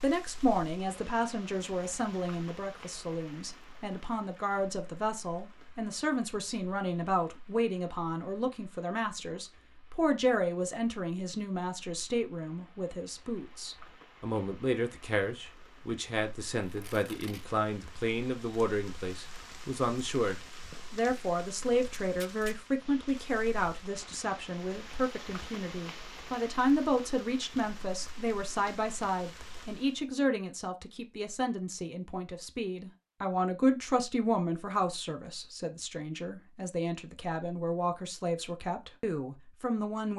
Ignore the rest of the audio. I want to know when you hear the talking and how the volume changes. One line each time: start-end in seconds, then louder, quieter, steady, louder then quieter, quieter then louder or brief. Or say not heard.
0.0-40.1 steady.